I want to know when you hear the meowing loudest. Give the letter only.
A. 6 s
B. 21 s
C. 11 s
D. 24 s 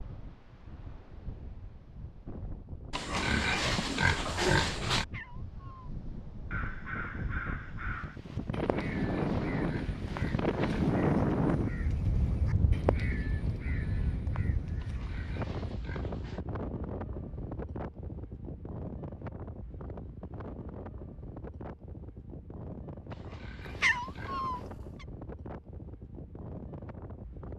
D.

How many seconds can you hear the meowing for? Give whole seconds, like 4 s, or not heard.
2 s.